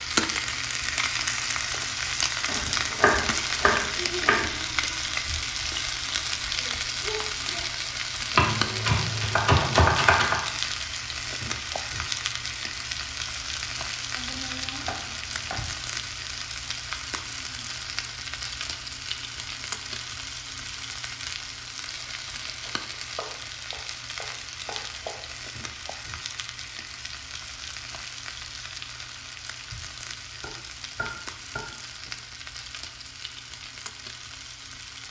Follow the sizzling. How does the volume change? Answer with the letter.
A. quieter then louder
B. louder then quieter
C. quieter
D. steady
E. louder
C.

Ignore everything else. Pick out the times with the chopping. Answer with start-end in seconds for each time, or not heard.
2.5-4.5, 8.3-10.4, 14.1-15.7, 22.6-25.2, 30.4-32.1.